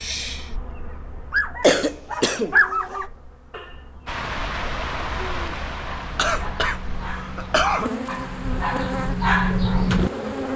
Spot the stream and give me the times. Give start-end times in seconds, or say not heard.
4.0-10.5.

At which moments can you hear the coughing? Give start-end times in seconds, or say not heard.
1.6-3.0, 6.2-7.9.